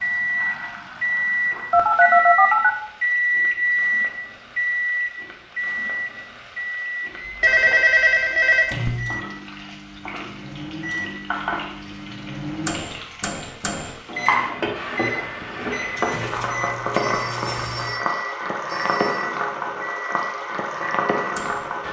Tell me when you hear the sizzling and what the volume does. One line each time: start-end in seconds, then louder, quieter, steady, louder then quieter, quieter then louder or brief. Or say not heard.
0.0-21.8 louder.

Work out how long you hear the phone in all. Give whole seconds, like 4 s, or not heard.
5 s.